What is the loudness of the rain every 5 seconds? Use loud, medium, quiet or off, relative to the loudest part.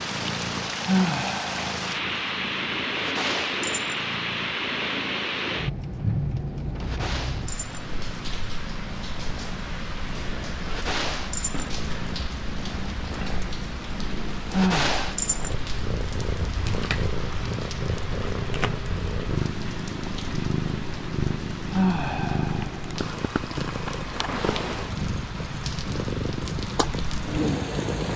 loud, loud, medium, medium, medium, medium.